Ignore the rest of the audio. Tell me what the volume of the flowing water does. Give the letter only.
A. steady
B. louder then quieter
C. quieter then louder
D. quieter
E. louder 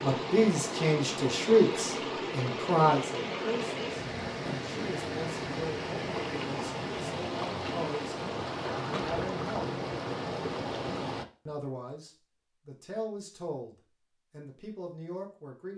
A.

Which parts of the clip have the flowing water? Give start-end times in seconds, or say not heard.
0.0-11.2.